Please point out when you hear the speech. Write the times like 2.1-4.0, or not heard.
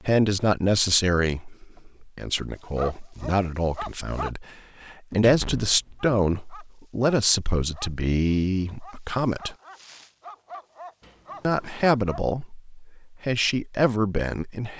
0.0-9.6, 11.4-14.7.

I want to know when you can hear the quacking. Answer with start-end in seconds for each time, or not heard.
not heard.